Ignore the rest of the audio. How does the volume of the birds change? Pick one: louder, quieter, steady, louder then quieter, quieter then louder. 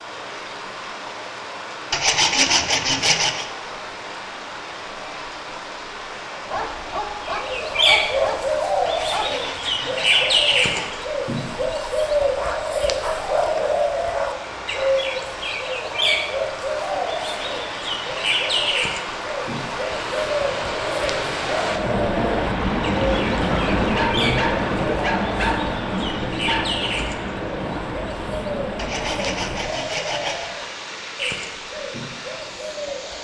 quieter.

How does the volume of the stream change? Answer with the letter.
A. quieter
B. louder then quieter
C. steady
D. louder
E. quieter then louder
B.